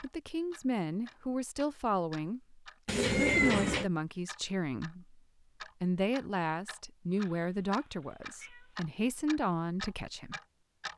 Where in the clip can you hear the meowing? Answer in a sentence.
You can hear the meowing from 2.9 to 3.9 s and from 7.2 to 8.8 s.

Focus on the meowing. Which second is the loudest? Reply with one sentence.
The loudest moment of the meowing is at 3 seconds.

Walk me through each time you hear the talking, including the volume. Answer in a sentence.
You can hear the talking from 0.0 to 10.4 s, at a steady volume.